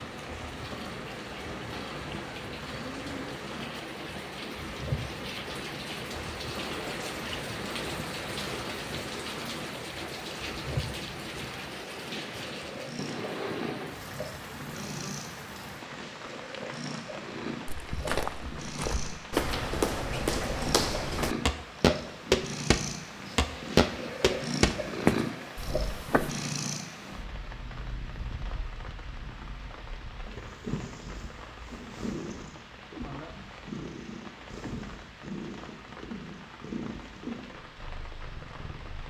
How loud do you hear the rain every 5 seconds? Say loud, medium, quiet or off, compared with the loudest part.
loud, loud, loud, medium, medium, medium, medium, medium.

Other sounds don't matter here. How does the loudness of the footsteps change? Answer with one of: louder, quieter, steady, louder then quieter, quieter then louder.
louder.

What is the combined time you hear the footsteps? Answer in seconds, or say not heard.
9 s.